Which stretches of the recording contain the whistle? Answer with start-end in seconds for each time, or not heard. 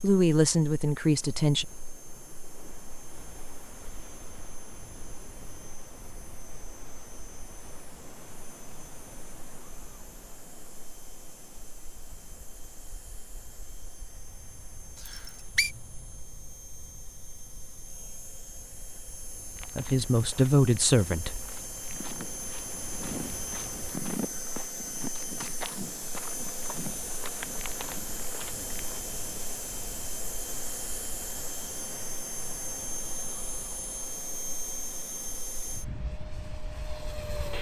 14.9-15.7.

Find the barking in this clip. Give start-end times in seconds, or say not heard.
not heard.